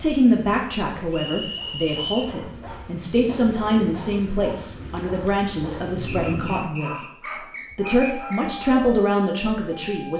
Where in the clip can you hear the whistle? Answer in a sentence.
The whistle can be heard from 1.1 to 2.4 s and from 6.0 to 8.5 s.